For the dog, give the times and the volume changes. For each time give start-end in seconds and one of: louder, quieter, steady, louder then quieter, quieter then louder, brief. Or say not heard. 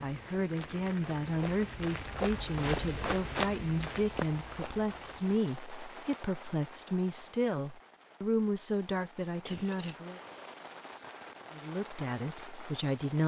not heard.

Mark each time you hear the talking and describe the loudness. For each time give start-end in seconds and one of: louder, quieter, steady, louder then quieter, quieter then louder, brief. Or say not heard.
0.0-10.2 steady
11.5-13.2 brief.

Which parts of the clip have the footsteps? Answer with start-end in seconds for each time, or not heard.
0.1-5.3.